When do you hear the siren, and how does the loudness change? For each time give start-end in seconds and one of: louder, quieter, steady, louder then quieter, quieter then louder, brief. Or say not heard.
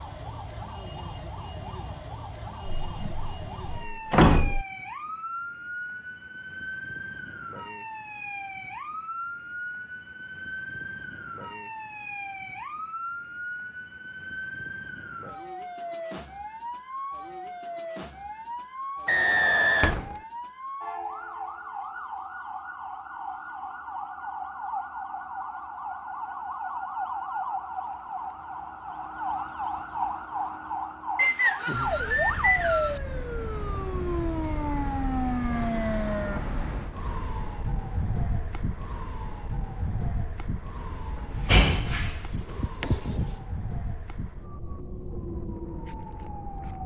0.0-46.8 louder then quieter.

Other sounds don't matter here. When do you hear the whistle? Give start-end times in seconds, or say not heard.
19.1-20.0, 31.1-33.0.